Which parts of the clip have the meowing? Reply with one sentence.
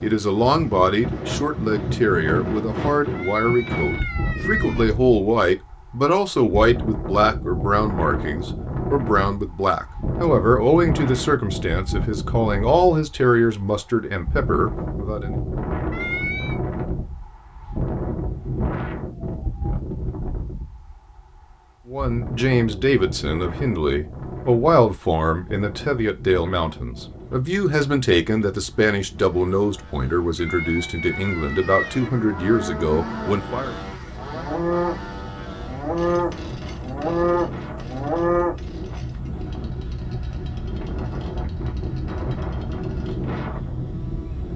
The meowing can be heard from 3.1 to 4.8 s, from 15.9 to 16.6 s and from 30.4 to 32.1 s.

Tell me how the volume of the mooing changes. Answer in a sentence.
The volume of the mooing goes up.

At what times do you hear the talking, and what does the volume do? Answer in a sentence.
The talking can be heard from 0.0 to 15.3 s, at a steady volume; and from 21.9 to 33.8 s, at a steady volume.